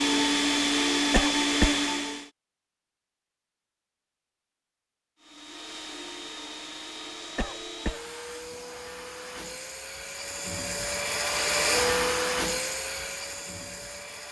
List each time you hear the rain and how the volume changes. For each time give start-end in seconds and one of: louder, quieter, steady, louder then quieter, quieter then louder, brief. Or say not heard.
not heard.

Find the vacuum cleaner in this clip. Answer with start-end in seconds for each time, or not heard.
0.0-2.3, 5.2-14.2.